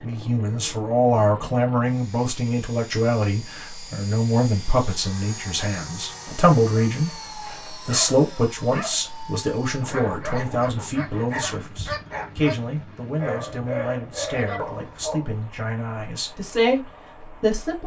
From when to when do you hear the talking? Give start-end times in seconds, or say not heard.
0.0-7.1, 7.7-17.8.